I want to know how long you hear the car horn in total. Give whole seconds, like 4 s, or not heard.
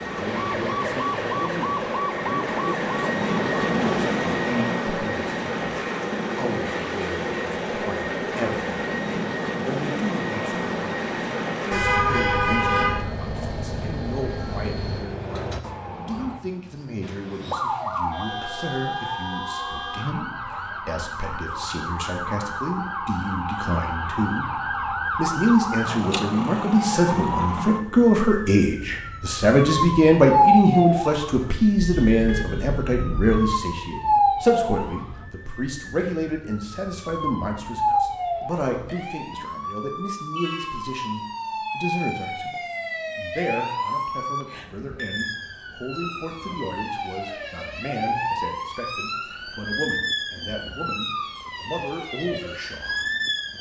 4 s.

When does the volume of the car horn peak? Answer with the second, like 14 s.
12 s.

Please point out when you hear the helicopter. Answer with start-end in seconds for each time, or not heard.
0.0-15.1.